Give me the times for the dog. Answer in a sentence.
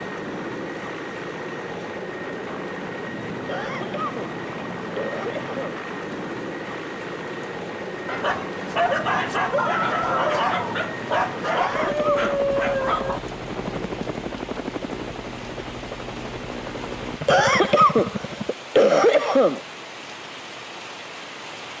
You can hear the dog from 8.1 to 13.2 s.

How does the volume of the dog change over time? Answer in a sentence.
The volume of the dog stays about the same.